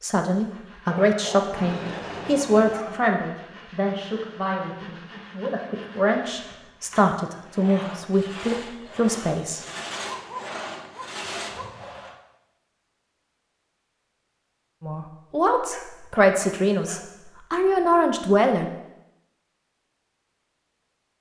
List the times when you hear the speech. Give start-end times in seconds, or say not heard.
0.0-9.6, 14.8-18.6.